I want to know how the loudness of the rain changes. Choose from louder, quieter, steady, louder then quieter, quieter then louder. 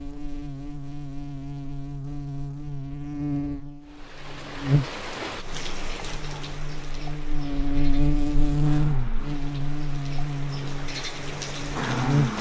quieter then louder.